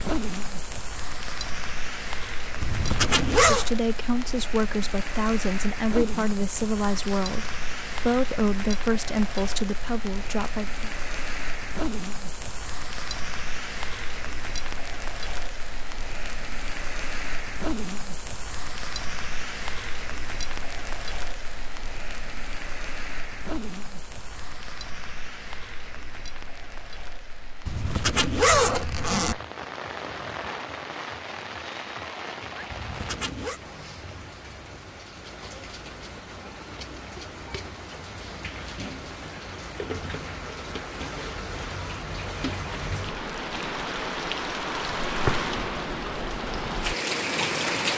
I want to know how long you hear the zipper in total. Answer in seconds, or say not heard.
4 s.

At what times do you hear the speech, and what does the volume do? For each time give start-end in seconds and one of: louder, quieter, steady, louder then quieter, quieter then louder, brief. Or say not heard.
3.5-10.8 steady.